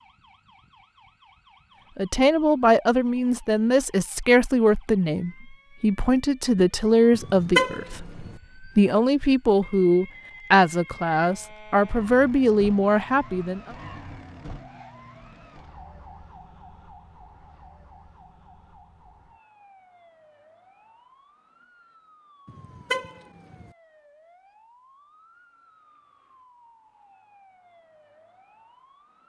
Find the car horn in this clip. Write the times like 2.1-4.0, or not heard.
7.1-8.3, 22.4-23.7.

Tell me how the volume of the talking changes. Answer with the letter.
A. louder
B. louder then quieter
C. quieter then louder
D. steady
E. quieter
D.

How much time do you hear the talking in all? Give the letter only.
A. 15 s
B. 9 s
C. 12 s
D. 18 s
C.